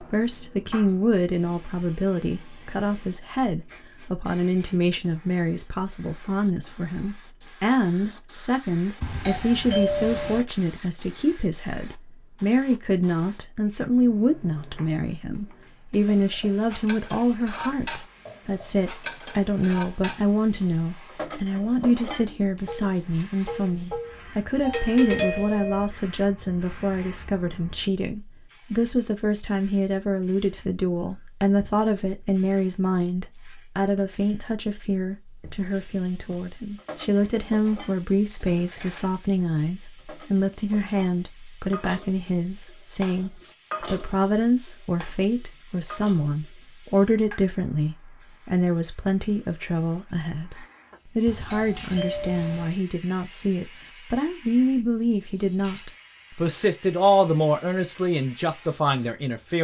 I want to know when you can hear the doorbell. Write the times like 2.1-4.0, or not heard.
9.0-10.4, 24.6-25.9, 51.2-52.7.